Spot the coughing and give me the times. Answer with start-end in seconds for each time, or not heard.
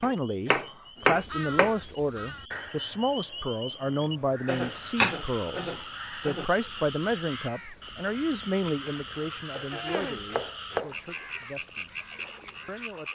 0.5-1.2, 4.5-6.5, 9.7-10.3.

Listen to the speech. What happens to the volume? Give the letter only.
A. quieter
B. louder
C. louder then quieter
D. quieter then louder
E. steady
A.